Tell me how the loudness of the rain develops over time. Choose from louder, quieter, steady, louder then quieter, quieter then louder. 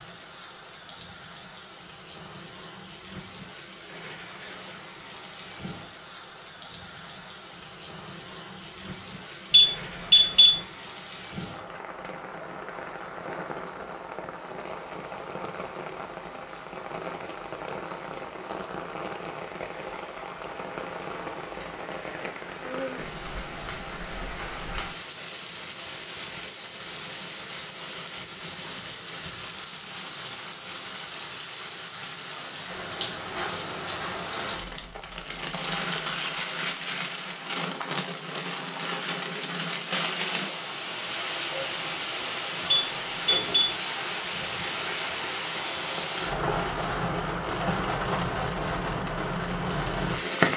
louder.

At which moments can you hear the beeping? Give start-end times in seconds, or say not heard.
9.5-10.6, 42.7-43.7.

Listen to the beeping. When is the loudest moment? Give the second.
10 s.